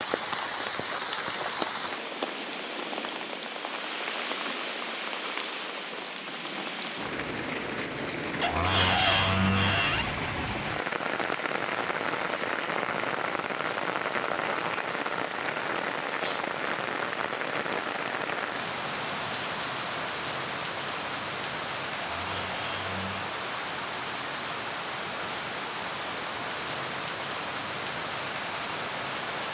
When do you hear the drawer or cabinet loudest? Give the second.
9 s.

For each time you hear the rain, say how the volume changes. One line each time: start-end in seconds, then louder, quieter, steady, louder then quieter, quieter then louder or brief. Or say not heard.
0.0-29.4 steady.